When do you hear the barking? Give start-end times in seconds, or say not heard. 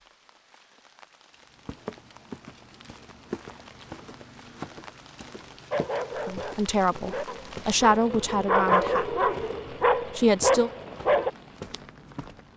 5.7-11.3.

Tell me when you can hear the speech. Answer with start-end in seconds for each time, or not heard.
6.2-9.2, 10.1-10.7.